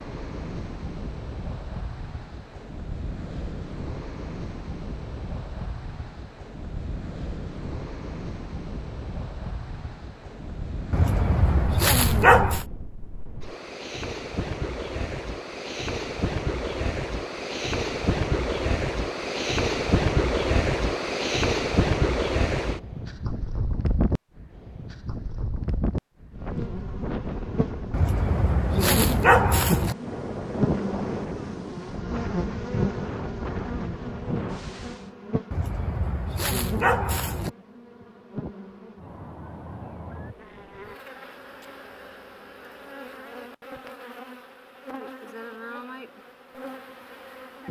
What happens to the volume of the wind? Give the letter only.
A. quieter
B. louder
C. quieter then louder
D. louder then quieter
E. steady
D.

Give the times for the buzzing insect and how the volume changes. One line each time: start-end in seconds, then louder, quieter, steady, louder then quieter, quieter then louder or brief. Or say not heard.
26.4-47.6 quieter.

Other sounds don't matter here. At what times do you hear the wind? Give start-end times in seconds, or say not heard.
0.0-35.1.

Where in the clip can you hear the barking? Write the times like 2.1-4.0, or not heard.
10.9-12.7, 27.9-29.9, 35.5-37.5.